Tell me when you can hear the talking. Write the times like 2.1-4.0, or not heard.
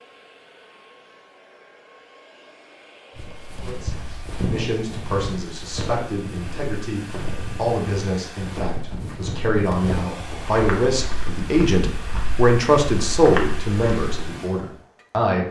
3.5-15.4.